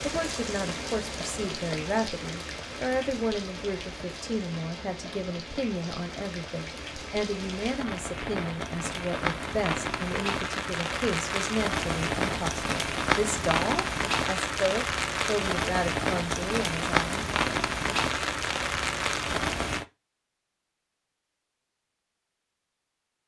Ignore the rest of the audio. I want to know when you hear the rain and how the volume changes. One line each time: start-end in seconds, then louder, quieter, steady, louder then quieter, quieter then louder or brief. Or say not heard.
0.0-19.9 louder.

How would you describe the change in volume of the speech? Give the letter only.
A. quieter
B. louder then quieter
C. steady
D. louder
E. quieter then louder
C.